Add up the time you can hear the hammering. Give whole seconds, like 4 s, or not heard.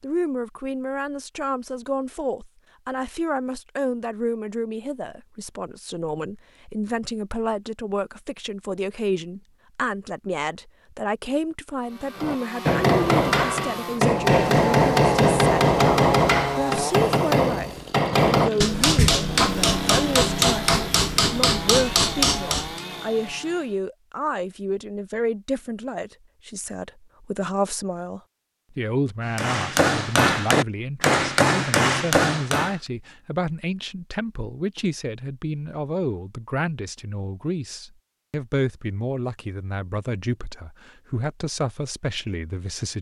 14 s.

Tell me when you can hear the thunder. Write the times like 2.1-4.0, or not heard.
not heard.